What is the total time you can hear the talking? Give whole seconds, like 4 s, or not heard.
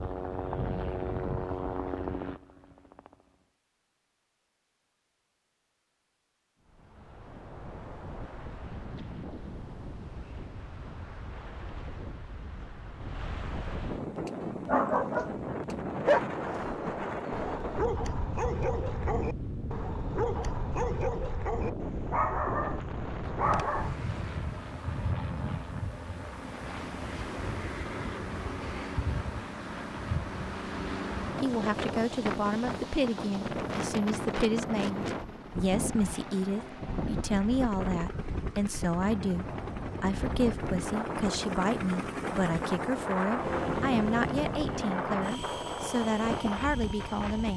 16 s.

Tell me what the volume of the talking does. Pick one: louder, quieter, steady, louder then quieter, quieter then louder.
steady.